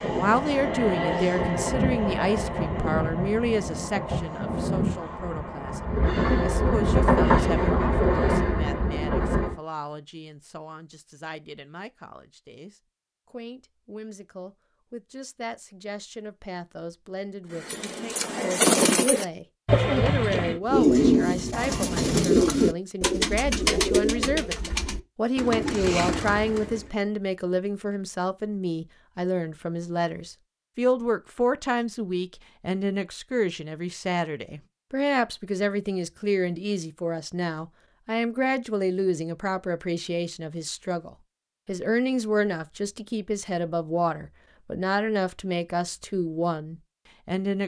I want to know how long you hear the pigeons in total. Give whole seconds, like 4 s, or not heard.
9 s.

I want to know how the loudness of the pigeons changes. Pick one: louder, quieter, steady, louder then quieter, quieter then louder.
quieter.